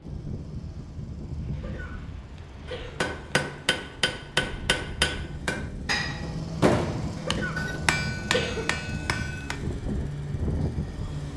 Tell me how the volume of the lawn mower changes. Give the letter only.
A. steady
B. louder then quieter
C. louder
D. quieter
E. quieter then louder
C.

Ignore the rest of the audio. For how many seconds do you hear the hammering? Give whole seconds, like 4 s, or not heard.
7 s.